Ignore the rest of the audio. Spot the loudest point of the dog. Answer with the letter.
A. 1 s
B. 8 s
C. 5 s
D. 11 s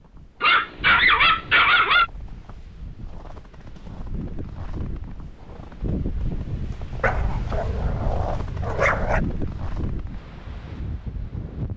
A.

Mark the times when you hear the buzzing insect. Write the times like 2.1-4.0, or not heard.
not heard.